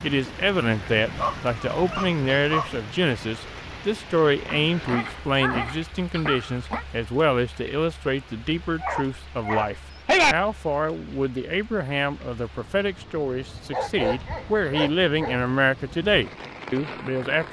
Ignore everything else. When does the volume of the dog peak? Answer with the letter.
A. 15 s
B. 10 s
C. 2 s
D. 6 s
B.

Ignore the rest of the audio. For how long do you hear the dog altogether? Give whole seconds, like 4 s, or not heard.
7 s.